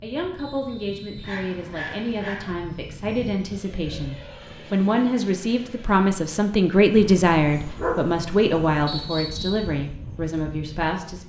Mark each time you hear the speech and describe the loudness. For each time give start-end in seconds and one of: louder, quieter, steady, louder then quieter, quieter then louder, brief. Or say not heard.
0.0-11.2 louder then quieter.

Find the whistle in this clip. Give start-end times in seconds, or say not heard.
0.3-1.4, 8.8-9.7.